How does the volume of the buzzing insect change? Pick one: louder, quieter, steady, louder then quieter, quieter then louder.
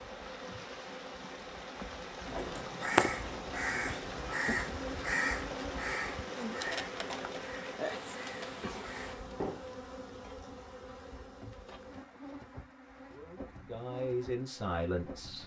louder then quieter.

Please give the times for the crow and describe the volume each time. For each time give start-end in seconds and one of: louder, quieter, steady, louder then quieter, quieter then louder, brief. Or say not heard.
2.2-9.7 quieter.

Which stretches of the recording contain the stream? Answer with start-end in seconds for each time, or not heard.
0.0-9.2.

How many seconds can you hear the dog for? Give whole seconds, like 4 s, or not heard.
not heard.